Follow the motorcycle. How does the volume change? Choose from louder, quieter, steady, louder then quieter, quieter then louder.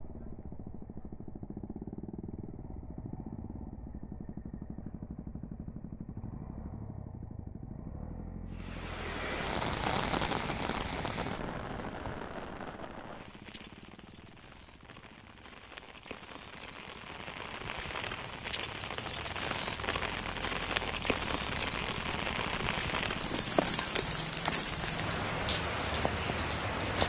quieter then louder.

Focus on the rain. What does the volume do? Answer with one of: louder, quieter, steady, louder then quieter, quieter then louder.
quieter then louder.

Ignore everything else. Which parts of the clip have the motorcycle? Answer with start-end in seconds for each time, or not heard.
0.0-27.0.